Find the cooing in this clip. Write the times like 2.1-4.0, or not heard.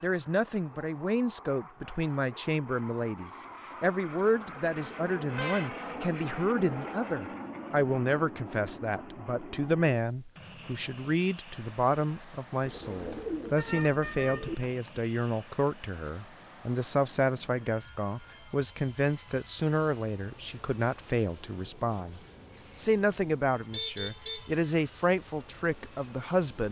12.6-14.6.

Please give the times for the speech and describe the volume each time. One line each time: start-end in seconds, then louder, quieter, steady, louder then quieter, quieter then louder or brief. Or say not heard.
0.0-26.6 steady.